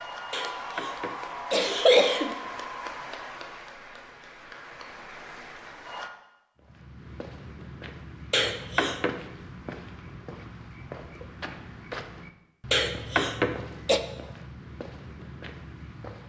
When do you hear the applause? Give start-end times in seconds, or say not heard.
0.0-6.1.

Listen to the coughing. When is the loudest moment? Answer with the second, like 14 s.
2 s.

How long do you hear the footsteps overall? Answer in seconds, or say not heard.
10 s.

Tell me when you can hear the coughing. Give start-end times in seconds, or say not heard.
0.3-2.4, 8.3-9.2, 12.7-14.0.